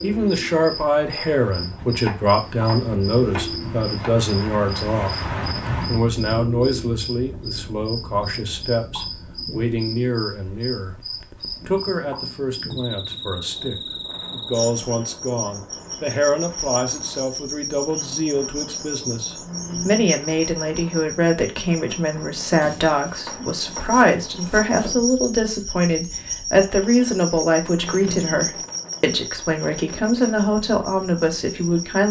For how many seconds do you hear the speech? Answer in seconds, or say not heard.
32 s.